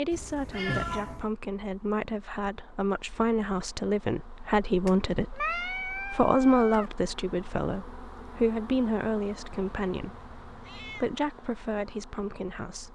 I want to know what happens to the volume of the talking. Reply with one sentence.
The loudness of the talking goes up, then down.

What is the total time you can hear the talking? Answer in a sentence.
You can hear the talking for 13 seconds altogether.